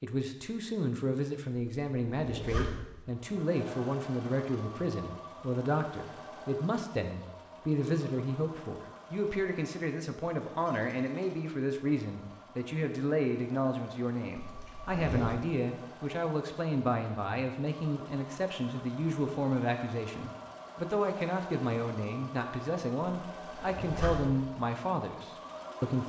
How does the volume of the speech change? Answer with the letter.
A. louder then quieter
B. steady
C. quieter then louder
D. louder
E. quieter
B.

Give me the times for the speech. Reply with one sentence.
You can hear the speech from 0.0 to 26.0 s.